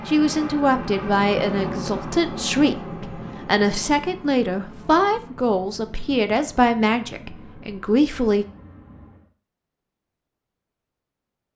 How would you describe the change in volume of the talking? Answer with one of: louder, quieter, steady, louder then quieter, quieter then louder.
steady.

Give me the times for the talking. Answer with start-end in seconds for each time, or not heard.
0.1-8.4.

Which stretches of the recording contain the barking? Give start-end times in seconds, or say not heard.
not heard.